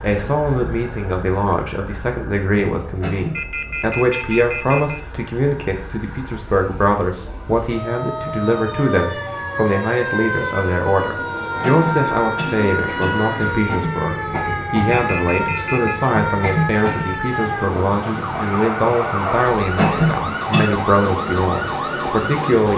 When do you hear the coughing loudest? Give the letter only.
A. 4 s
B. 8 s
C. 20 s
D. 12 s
C.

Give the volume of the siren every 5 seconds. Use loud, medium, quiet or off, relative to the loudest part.
quiet, medium, loud, loud, loud.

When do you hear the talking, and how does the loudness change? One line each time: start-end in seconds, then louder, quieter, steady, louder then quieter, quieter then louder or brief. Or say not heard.
0.0-22.7 steady.